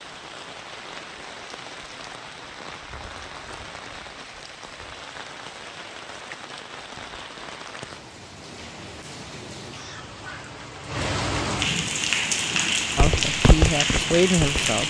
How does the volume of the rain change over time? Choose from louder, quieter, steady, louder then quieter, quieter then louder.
louder.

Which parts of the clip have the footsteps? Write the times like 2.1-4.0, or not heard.
12.9-14.8.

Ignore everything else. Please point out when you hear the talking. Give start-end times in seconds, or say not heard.
12.9-14.8.